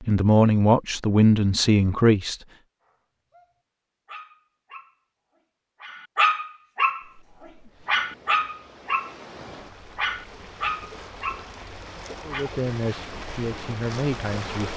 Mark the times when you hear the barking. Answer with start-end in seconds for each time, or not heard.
2.9-3.5, 4.0-7.0, 7.8-9.2, 9.9-12.4.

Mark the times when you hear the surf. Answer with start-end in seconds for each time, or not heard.
7.0-14.7.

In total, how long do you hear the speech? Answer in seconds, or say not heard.
5 s.